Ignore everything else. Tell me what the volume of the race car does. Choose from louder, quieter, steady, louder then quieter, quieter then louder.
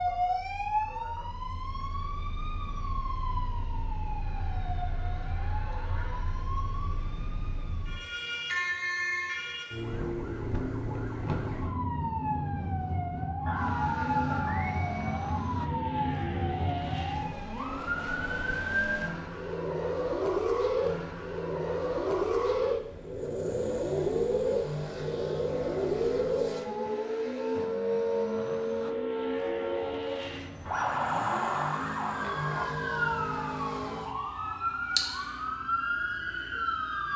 steady.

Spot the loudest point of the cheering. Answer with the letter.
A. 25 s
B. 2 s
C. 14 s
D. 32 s
C.